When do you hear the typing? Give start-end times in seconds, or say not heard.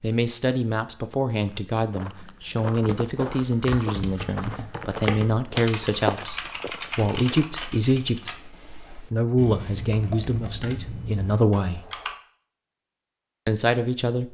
2.8-12.2.